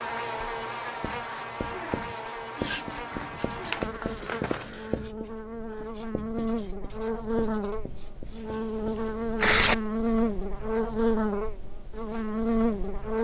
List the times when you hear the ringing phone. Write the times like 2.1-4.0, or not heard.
not heard.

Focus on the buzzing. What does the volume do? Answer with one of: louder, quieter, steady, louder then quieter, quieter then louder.
louder.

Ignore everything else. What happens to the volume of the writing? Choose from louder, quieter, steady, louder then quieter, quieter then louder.
quieter.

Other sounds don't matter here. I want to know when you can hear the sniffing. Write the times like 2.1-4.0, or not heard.
2.5-3.5.